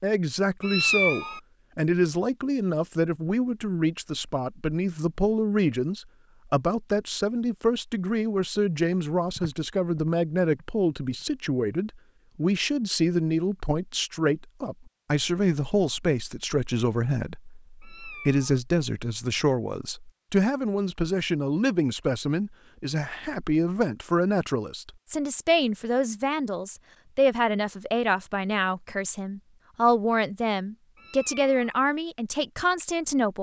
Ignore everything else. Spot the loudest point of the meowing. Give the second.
1 s.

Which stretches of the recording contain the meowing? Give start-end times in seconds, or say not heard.
0.6-1.4, 17.8-18.6, 30.9-31.8.